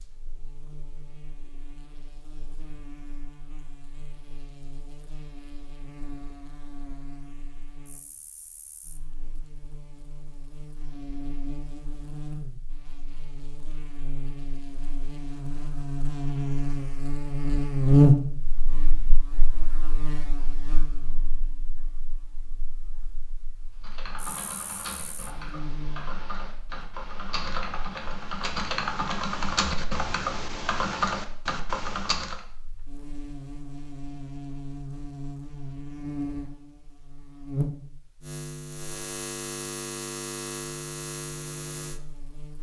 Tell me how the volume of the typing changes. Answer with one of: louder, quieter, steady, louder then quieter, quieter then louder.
louder.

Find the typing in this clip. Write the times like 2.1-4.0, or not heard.
23.8-32.4.